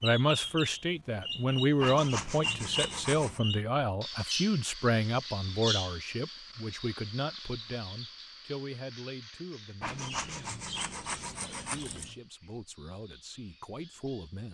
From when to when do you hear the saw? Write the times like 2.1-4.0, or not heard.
1.8-3.4, 9.8-12.2.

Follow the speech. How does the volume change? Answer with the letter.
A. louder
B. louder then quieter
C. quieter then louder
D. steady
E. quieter
E.